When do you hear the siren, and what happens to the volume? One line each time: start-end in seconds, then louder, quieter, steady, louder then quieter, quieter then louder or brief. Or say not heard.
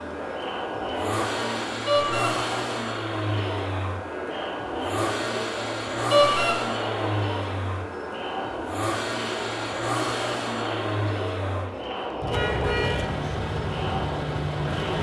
not heard.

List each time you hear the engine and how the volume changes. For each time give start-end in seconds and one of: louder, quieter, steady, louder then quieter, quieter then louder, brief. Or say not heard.
0.0-14.9 steady.